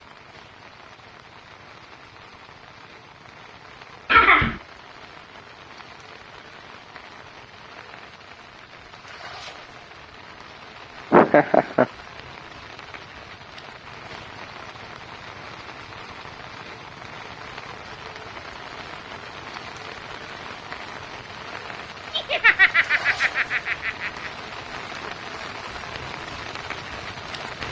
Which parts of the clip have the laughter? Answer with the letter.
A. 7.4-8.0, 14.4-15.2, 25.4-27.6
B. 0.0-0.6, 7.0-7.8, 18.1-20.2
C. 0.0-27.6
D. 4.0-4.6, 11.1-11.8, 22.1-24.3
D.